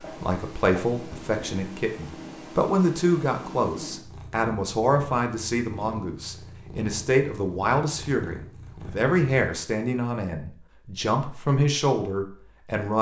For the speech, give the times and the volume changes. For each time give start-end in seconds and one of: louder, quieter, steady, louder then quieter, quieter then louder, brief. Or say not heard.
0.2-12.9 steady.